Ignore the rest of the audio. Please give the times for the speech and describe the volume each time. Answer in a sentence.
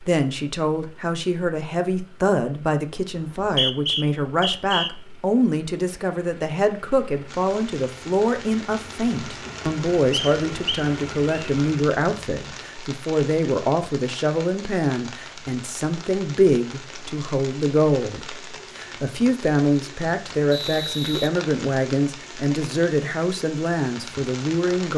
You can hear the speech from 0.0 to 24.9 s, at a steady volume.